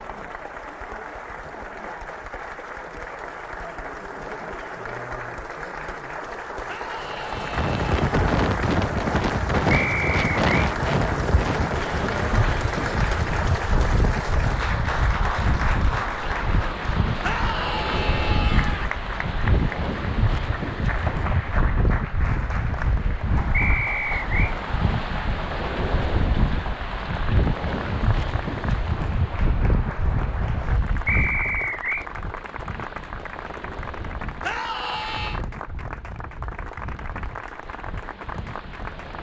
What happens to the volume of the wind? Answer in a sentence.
The volume of the wind goes down.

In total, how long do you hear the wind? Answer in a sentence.
The wind can be heard for 32 seconds in total.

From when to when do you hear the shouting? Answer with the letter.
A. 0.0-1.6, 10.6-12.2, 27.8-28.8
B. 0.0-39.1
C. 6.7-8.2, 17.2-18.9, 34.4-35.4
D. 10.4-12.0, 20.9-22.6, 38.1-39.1
C.